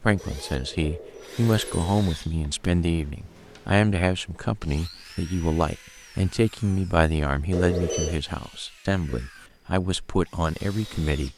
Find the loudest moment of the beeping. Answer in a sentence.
The volume of the beeping peaks at 8 seconds.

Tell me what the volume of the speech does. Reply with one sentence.
The volume of the speech stays about the same.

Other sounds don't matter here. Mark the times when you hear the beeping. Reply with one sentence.
You can hear the beeping from 0.1 to 1.9 s and from 7.5 to 8.2 s.